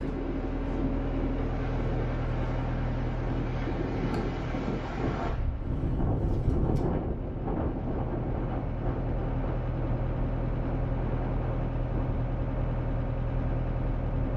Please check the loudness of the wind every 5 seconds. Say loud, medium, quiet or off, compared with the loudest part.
loud, loud, medium.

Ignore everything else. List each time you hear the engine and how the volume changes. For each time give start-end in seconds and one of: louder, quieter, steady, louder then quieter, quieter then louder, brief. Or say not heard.
0.0-14.3 quieter then louder.